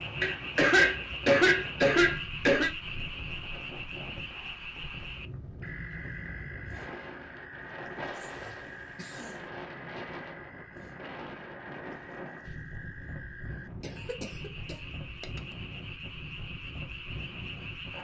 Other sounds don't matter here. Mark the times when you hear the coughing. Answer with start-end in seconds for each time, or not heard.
0.2-2.7, 8.2-9.4, 13.8-15.4.